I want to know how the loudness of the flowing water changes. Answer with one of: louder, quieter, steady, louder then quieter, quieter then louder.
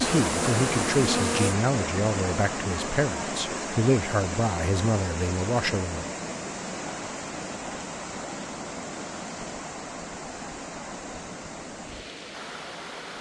quieter.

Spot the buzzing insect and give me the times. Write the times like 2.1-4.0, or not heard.
0.0-1.6.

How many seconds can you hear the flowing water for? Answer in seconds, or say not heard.
13 s.